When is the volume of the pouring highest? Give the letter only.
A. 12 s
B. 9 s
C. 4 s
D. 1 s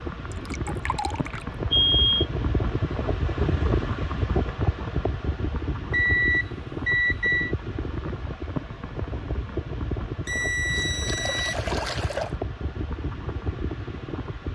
A.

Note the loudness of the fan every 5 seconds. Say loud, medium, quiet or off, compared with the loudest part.
loud, loud, medium.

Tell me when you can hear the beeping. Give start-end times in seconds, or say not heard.
1.7-2.2, 5.9-7.5, 10.2-11.6.